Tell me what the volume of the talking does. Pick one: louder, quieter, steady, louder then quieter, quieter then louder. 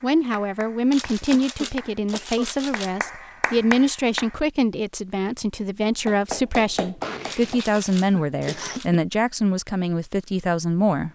steady.